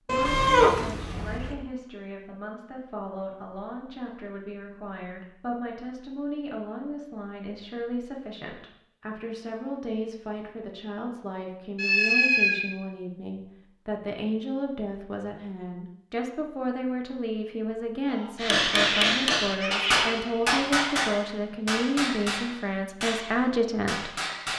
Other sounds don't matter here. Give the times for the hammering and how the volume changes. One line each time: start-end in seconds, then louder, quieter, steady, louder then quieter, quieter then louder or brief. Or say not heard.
18.4-24.5 quieter.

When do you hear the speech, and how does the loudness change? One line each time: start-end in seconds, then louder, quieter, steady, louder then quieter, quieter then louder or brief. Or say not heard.
0.1-24.2 louder.